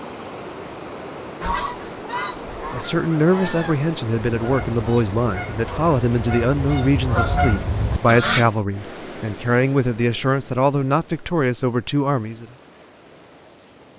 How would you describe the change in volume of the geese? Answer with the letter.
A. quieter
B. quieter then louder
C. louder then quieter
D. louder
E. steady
D.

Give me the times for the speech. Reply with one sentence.
You can hear the speech from 2.7 to 12.4 s.